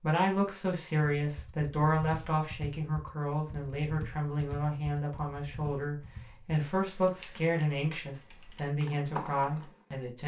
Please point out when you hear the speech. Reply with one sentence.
You can hear the speech from 0.0 to 10.2 s.